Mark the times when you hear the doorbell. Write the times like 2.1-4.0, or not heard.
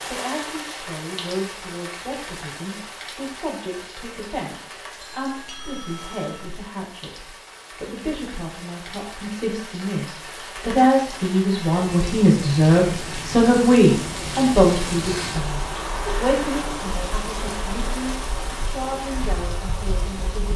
5.0-6.5.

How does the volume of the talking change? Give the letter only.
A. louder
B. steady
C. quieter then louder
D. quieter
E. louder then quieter
E.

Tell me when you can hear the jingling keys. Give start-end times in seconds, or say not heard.
not heard.